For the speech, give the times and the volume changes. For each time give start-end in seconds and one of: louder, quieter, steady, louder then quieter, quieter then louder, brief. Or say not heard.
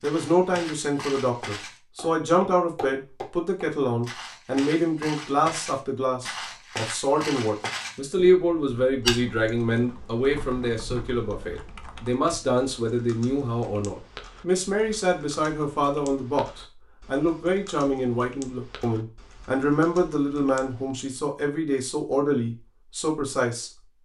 0.0-23.7 steady.